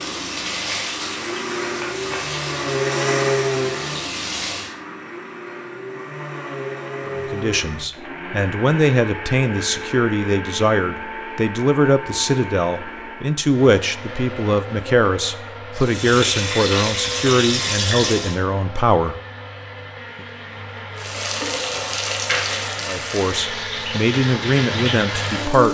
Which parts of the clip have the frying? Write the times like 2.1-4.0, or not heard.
0.0-4.8, 15.8-18.4, 20.9-25.6.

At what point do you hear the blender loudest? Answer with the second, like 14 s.
3 s.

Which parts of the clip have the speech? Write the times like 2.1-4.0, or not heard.
7.2-19.1, 22.9-25.6.